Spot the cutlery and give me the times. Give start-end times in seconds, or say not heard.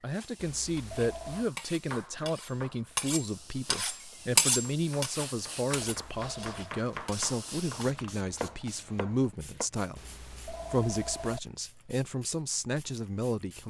0.2-7.8.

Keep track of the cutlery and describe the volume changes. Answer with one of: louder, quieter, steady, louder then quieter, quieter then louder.
louder then quieter.